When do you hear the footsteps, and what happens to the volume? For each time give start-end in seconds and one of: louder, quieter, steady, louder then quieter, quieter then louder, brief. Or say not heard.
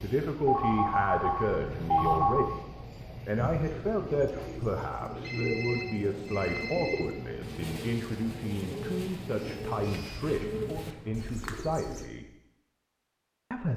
not heard.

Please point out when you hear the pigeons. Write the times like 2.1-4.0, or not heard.
3.4-12.1.